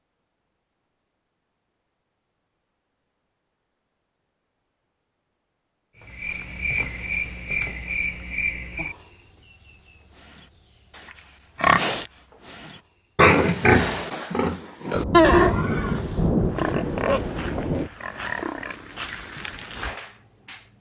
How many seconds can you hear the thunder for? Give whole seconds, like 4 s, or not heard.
3 s.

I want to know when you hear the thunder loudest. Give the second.
16 s.